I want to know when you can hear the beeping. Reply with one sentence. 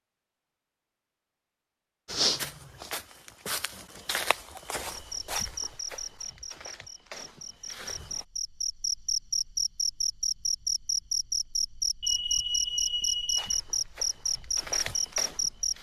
You can hear the beeping from 12.0 to 13.6 s.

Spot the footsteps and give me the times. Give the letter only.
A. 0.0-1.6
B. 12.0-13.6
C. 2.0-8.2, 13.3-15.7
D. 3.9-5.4
C.